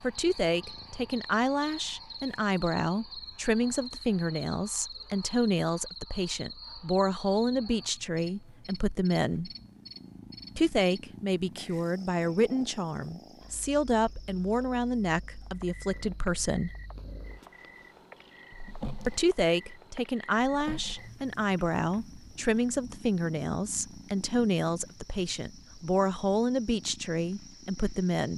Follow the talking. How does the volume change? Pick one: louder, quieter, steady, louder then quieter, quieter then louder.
steady.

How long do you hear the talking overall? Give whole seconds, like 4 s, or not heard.
25 s.